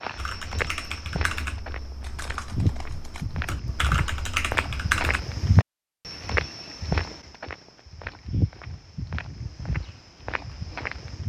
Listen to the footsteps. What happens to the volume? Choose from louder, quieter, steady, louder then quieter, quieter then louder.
louder then quieter.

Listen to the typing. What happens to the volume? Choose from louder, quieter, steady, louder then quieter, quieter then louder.
quieter then louder.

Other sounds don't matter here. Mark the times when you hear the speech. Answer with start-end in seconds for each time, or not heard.
not heard.